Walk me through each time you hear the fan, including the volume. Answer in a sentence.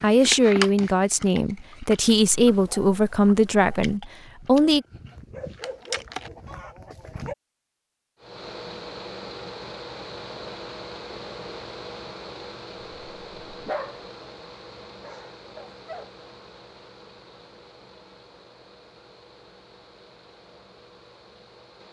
The fan can be heard from 8.2 to 21.8 s, getting quieter.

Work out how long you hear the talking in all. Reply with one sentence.
You can hear the talking for 5 seconds altogether.